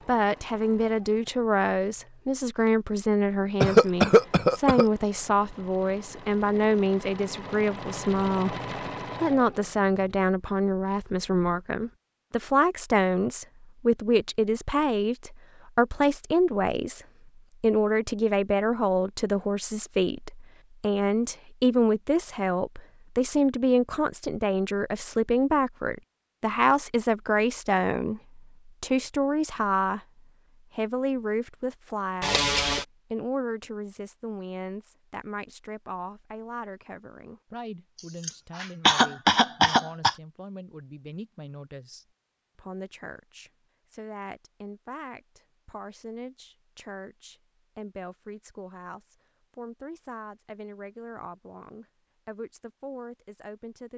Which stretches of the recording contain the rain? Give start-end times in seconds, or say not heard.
not heard.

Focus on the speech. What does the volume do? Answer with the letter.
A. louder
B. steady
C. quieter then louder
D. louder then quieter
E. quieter
E.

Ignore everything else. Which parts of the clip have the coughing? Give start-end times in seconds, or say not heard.
3.6-4.8, 32.2-32.9, 38.2-40.1.